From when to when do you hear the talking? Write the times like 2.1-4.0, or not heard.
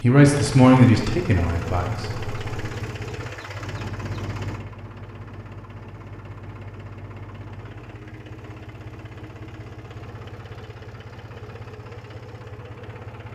0.0-1.9.